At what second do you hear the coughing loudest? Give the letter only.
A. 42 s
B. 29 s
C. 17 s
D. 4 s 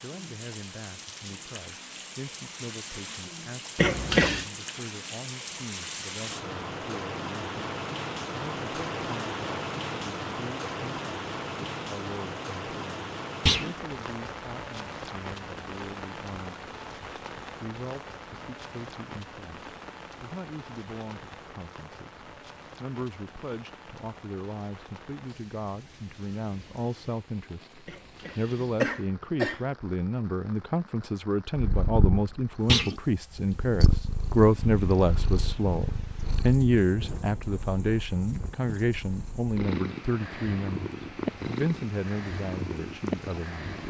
D.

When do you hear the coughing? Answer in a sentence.
The coughing can be heard from 3.8 to 4.5 s and from 27.9 to 29.6 s.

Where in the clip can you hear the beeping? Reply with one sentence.
You can't hear the beeping here.